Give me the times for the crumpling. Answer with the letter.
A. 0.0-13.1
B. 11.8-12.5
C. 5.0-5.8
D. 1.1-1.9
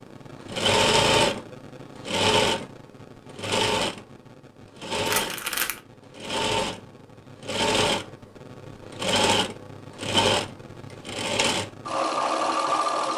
C.